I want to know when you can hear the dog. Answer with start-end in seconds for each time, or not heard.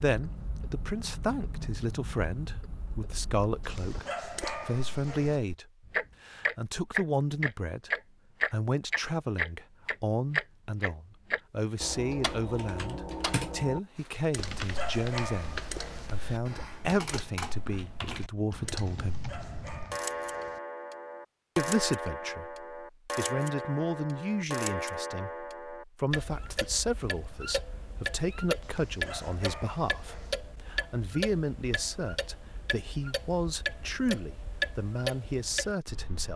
3.6-5.4, 14.3-16.1, 18.9-20.6, 28.6-30.4.